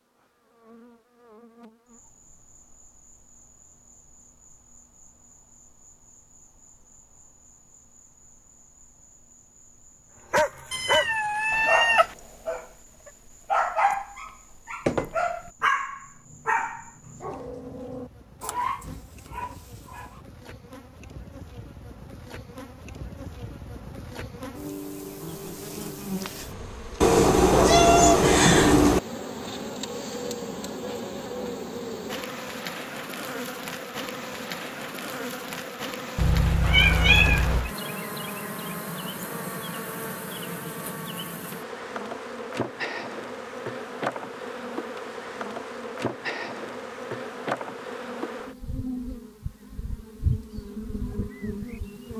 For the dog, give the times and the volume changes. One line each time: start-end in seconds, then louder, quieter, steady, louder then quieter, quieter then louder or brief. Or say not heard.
10.3-20.2 quieter.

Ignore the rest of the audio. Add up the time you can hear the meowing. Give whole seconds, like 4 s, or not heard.
5 s.